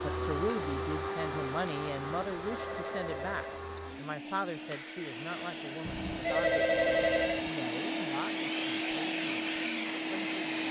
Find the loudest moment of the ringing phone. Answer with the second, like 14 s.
7 s.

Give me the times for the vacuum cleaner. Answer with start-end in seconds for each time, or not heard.
0.0-10.6.